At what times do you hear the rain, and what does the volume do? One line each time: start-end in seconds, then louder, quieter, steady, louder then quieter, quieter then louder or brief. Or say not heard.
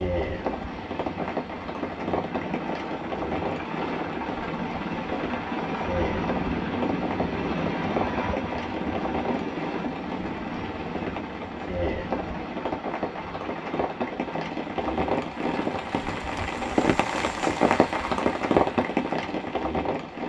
0.0-20.2 louder.